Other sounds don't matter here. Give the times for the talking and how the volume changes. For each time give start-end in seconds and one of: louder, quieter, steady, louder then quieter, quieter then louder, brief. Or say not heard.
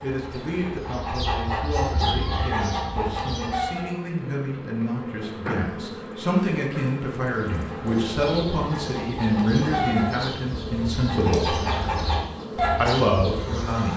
0.0-11.6 louder
12.6-13.9 brief.